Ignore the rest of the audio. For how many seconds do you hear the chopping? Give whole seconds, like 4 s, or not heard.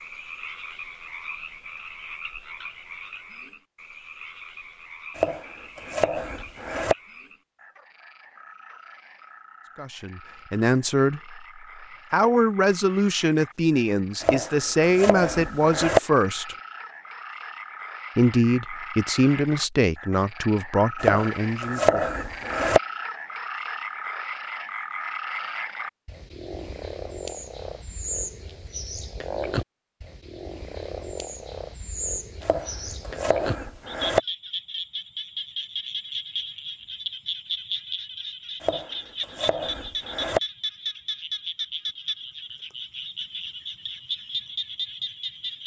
9 s.